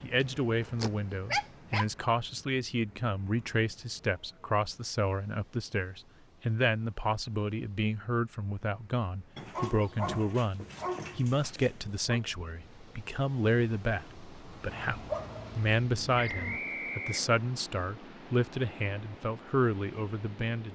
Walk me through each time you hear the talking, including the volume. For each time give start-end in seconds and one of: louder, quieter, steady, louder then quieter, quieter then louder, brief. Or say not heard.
0.0-20.7 steady.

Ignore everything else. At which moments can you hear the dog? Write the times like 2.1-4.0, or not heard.
0.2-1.9, 9.3-12.2, 14.6-16.6.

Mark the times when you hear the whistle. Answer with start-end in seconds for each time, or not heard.
16.1-17.4.